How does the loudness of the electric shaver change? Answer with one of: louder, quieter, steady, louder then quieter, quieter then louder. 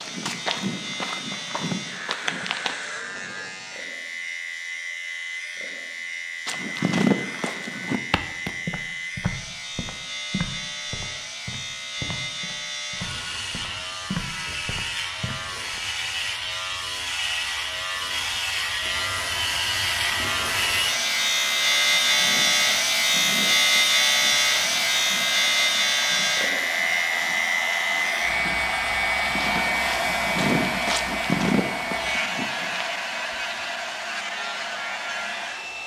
louder then quieter.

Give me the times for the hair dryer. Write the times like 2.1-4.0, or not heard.
18.6-35.8.